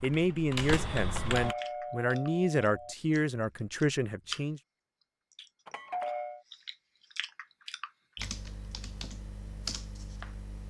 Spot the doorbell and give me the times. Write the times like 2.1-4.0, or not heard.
1.3-3.0, 5.7-6.4.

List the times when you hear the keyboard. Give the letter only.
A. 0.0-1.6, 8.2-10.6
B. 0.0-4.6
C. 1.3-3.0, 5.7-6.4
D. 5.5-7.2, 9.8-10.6
A.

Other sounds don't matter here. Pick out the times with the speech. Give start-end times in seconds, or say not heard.
0.0-4.6.